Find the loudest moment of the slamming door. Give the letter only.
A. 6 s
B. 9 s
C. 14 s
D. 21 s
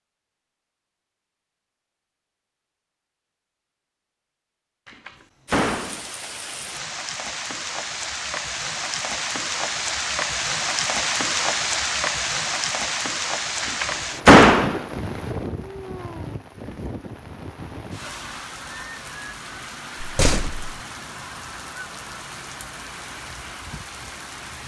C.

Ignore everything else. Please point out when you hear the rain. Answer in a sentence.
You can hear the rain from 5.5 to 24.6 s.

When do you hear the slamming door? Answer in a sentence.
The slamming door can be heard from 4.8 to 6.0 s, from 13.6 to 14.8 s and from 20.0 to 20.7 s.